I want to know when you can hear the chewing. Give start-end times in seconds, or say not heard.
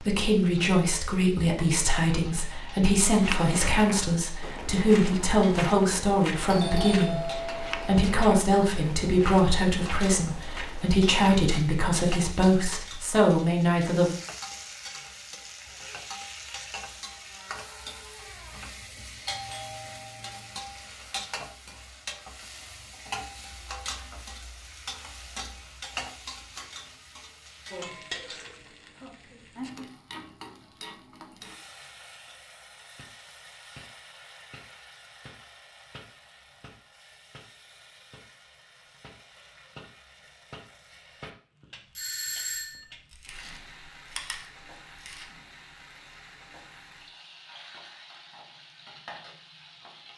43.1-45.3.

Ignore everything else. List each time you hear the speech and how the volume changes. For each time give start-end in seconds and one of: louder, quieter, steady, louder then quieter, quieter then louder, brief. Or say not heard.
0.0-14.2 steady.